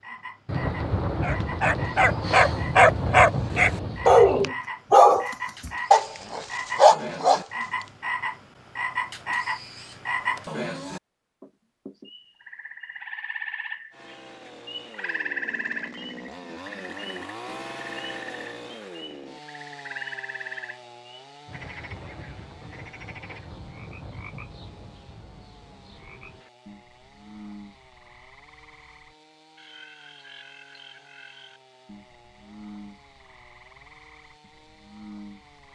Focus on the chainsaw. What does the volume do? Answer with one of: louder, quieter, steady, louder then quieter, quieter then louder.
quieter.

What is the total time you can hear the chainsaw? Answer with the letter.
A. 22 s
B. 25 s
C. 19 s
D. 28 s
A.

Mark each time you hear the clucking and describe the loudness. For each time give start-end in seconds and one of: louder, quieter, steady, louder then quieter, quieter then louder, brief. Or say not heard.
not heard.